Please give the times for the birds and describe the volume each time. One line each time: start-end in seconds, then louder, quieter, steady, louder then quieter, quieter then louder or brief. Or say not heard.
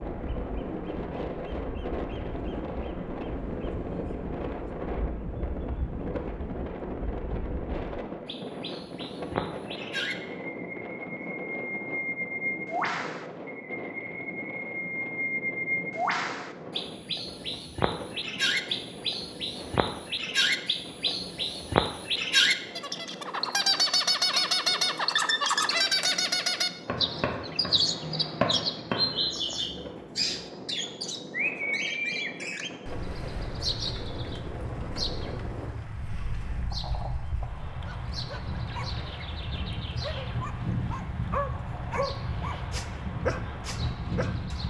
0.0-44.6 louder then quieter.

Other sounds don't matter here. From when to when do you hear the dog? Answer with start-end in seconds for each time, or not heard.
37.7-44.6.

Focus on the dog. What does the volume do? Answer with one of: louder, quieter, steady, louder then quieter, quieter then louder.
louder.